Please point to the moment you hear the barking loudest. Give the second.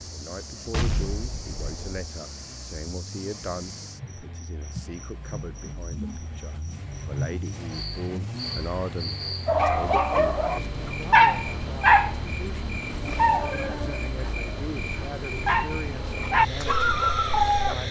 11 s.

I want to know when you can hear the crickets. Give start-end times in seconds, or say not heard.
0.0-17.8.